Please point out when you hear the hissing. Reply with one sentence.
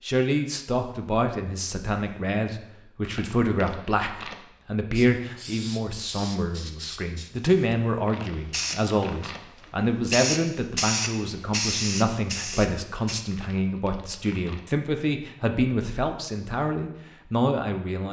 The hissing can be heard from 4.9 to 13.2 s.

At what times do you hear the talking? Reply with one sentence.
You can hear the talking from 0.0 to 18.0 s.